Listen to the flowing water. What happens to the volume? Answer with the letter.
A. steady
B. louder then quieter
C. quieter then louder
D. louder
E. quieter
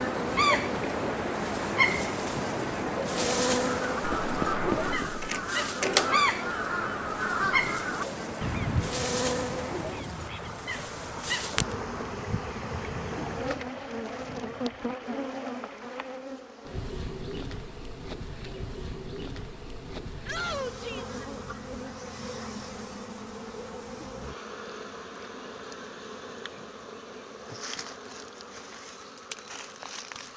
E.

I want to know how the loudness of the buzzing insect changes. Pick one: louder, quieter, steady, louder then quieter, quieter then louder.
quieter.